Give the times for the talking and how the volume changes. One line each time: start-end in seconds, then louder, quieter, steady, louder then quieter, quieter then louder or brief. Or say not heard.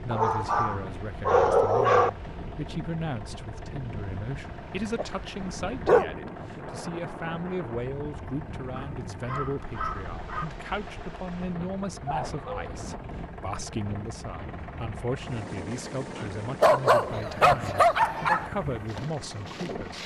0.0-20.0 steady.